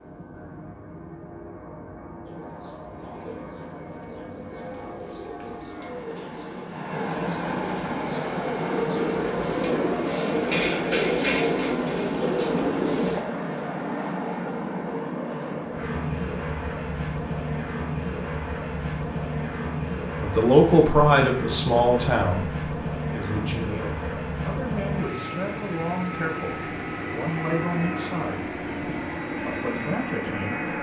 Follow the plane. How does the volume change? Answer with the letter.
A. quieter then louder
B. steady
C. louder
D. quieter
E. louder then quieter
C.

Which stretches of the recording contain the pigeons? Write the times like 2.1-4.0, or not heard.
2.2-13.2.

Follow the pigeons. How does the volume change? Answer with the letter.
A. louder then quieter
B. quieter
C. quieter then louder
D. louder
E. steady
D.